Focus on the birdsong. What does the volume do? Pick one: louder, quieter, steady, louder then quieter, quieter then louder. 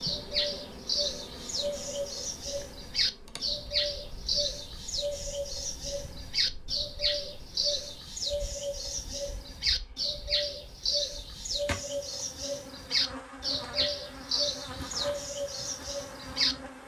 steady.